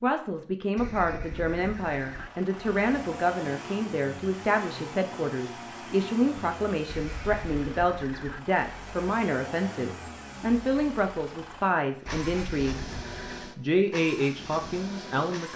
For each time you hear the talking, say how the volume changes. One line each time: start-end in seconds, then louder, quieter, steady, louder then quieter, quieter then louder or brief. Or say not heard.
0.0-12.8 steady
13.6-15.5 brief.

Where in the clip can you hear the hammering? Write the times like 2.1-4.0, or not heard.
not heard.